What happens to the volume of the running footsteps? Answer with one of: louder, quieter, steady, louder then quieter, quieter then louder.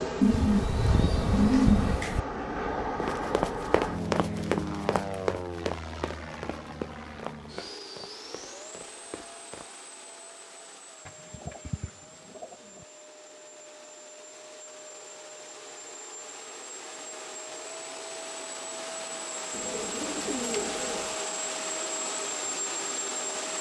quieter.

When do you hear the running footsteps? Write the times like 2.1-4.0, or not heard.
3.0-9.7.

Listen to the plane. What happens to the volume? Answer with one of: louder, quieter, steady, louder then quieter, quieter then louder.
quieter then louder.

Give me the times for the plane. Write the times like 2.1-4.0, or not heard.
0.0-23.5.